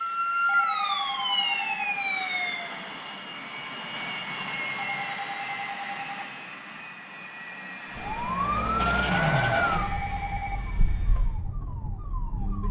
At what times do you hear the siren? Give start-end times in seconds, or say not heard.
0.0-2.9, 7.9-12.6.